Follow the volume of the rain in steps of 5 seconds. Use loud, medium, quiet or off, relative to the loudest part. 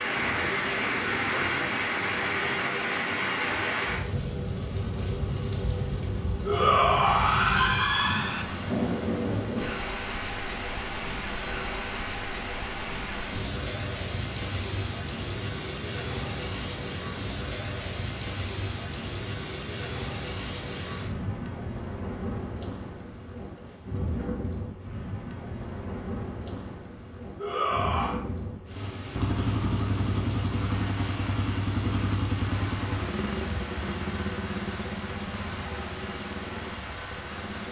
loud, loud, medium, medium, medium, medium, medium, medium.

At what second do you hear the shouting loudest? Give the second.
7 s.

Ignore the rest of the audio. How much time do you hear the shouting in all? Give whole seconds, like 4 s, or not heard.
3 s.